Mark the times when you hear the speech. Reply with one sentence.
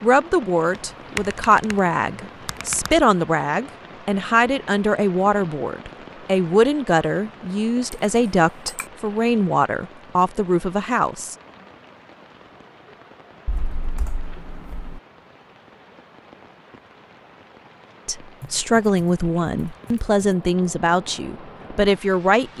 The speech can be heard from 0.0 to 11.3 s and from 18.1 to 22.5 s.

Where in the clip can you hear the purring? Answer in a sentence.
You can't hear the purring here.